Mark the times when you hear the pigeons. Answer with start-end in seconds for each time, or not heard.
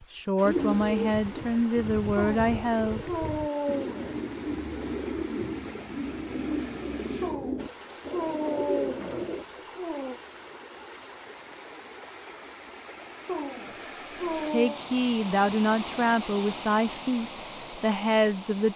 0.4-9.4.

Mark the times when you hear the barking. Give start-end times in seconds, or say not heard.
2.1-4.2, 7.2-10.2, 13.2-14.8.